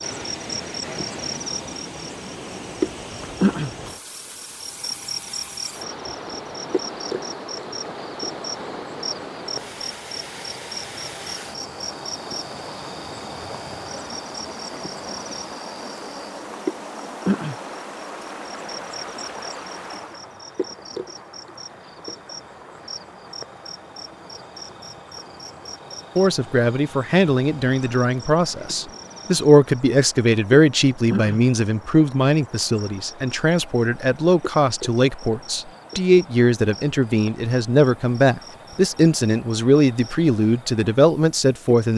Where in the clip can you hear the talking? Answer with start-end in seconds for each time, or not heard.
26.1-41.9.